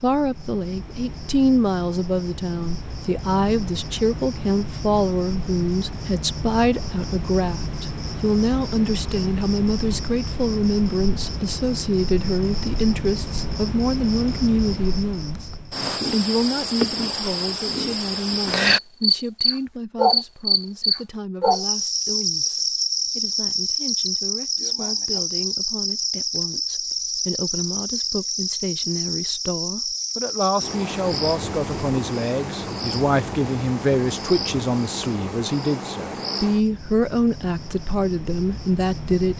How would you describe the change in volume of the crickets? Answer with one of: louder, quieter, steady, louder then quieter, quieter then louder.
louder then quieter.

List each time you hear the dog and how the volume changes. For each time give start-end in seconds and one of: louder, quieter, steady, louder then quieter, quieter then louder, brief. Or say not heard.
not heard.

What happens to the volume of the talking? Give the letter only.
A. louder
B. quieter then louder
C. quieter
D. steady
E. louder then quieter
B.